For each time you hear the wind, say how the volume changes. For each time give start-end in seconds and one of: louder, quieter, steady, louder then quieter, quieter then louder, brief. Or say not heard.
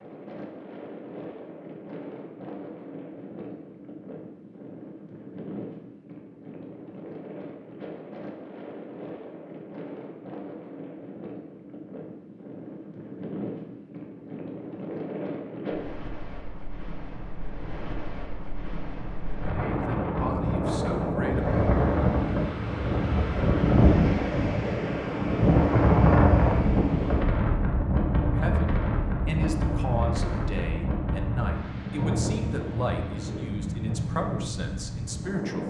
0.0-35.6 louder then quieter.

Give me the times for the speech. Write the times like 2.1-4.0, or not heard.
19.6-21.6, 28.3-35.6.